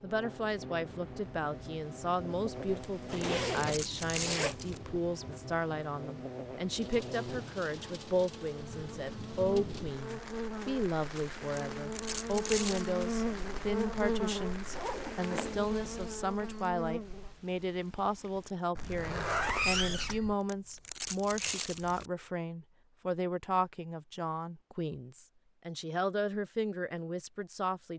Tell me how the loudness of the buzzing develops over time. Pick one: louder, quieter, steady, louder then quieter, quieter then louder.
louder.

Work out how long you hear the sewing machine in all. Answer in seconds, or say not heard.
not heard.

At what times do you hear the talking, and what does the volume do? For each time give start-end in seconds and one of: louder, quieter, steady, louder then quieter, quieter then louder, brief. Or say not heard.
0.0-27.9 steady.